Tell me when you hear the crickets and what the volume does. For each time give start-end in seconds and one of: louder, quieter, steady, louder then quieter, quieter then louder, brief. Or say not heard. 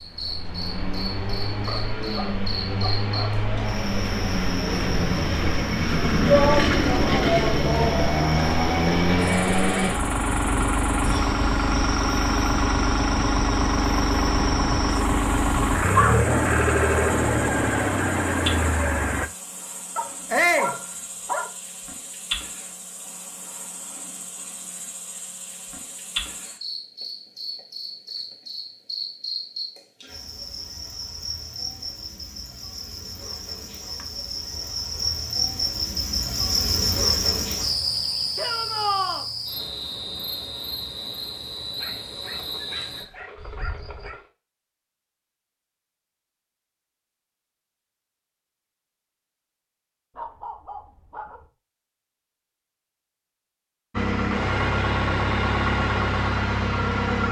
0.0-44.1 louder.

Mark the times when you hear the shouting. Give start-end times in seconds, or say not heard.
6.2-8.0, 20.3-20.8, 38.4-39.2.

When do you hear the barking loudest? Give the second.
16 s.